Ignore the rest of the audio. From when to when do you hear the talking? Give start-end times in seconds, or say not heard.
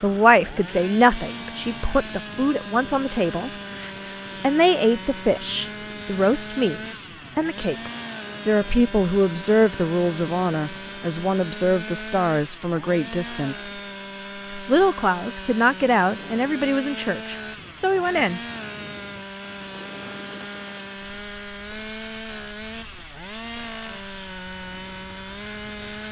0.0-13.8, 14.7-18.4.